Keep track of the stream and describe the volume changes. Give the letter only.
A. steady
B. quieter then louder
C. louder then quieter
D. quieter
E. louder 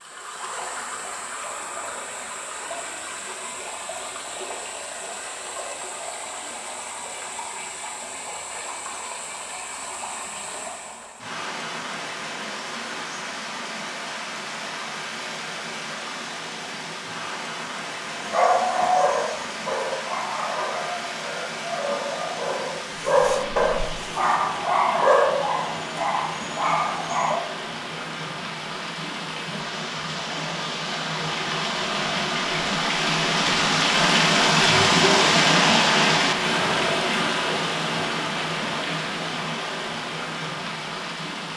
E.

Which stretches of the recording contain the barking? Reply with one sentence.
The barking can be heard from 18.1 to 27.4 s.